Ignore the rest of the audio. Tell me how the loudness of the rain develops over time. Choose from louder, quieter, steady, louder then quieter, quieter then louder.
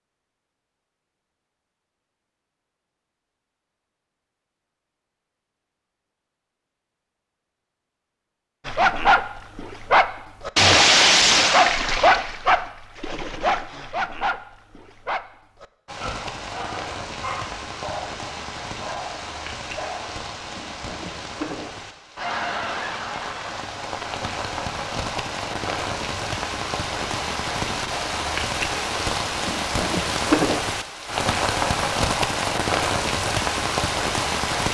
louder.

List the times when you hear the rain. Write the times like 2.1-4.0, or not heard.
15.8-34.6.